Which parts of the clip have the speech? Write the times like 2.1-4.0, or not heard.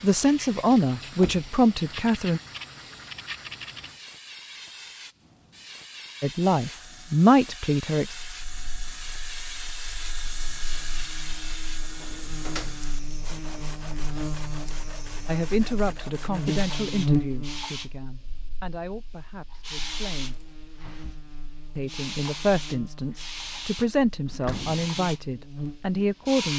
0.0-2.4, 6.2-8.1, 15.2-20.4, 21.8-26.5.